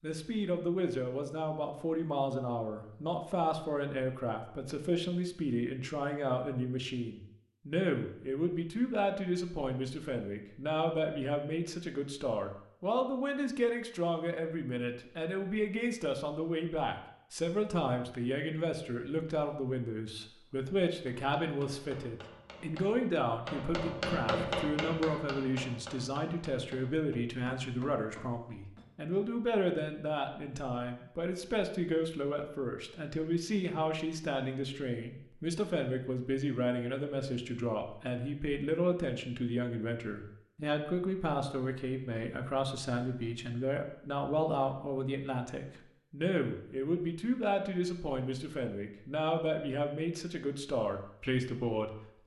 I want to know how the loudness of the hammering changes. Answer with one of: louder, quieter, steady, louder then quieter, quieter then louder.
louder then quieter.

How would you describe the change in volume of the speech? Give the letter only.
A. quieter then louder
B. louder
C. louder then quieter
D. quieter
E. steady
E.